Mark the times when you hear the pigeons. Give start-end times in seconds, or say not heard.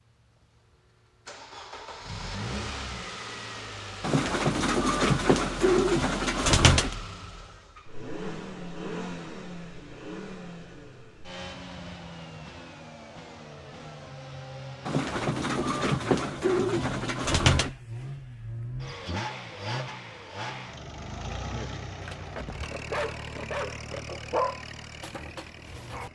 4.0-7.0, 14.8-17.7.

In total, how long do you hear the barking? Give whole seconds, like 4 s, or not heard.
4 s.